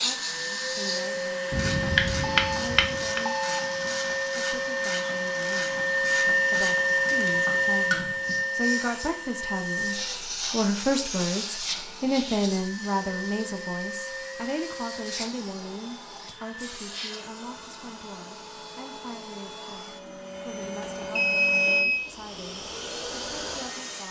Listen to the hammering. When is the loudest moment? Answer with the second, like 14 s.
2 s.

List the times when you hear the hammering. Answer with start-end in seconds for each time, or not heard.
1.5-3.2.